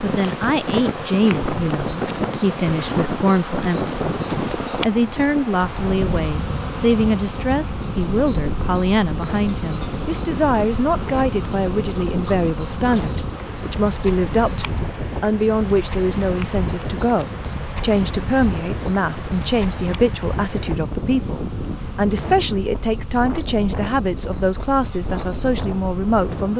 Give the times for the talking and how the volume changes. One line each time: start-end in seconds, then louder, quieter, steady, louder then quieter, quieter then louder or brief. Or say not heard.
0.0-26.5 steady.